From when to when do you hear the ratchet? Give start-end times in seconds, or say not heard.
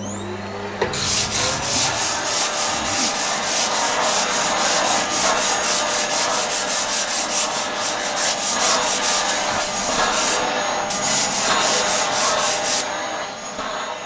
0.8-2.4.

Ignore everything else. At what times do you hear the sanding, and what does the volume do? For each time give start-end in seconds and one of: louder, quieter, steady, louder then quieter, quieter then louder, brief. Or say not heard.
0.9-12.8 steady.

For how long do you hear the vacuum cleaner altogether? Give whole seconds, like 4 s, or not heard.
14 s.